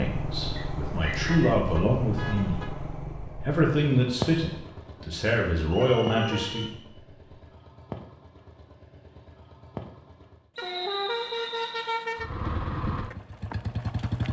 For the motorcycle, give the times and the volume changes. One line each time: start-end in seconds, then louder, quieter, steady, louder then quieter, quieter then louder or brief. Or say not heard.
0.0-10.5 quieter
12.2-14.2 brief.